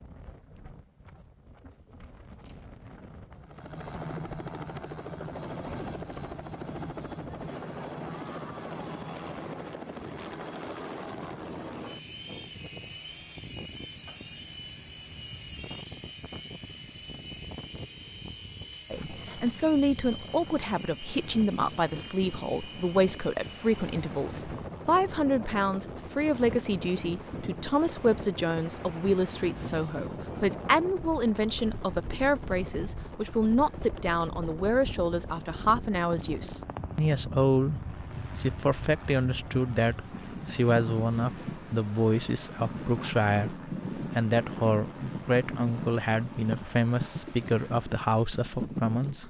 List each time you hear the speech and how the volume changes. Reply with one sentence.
You can hear the speech from 18.9 to 49.2 s, at a steady volume.